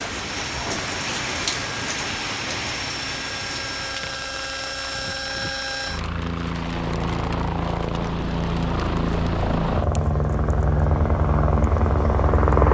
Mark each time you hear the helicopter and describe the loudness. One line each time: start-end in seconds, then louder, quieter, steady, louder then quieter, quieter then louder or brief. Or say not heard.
0.2-12.6 louder.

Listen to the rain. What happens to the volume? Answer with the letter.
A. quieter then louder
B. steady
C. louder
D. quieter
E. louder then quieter
D.